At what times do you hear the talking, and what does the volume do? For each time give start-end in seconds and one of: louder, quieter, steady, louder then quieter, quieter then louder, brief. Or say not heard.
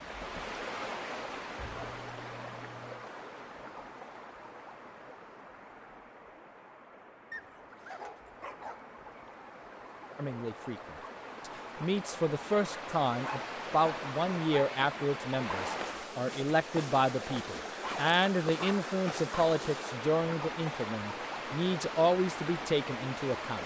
10.2-23.6 steady.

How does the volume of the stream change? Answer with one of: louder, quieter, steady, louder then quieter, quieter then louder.
quieter then louder.